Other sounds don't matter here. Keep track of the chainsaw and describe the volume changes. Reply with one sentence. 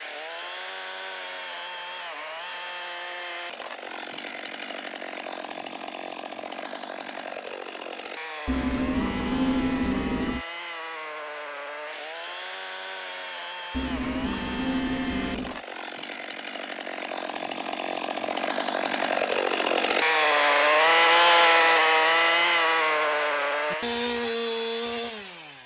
The volume of the chainsaw goes up.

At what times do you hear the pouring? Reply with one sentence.
You can hear the pouring from 8.4 to 10.4 s and from 13.7 to 15.6 s.